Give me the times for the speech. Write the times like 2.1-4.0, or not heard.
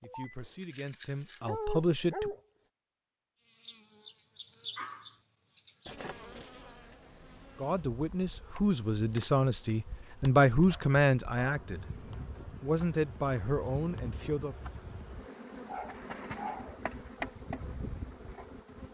0.0-2.3, 7.5-14.6.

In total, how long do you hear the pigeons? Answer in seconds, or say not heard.
not heard.